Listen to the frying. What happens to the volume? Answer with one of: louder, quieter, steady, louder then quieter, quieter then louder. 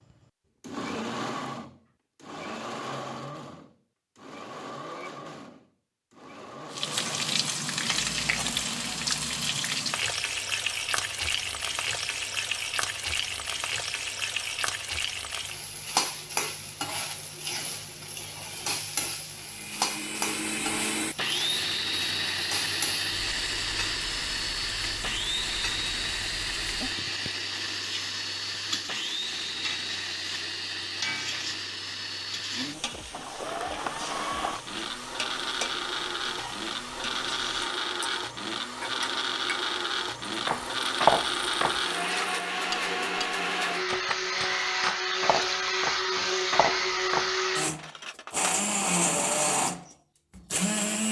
quieter.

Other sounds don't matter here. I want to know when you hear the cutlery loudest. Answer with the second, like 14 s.
41 s.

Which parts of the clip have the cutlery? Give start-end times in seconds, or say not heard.
40.5-48.7.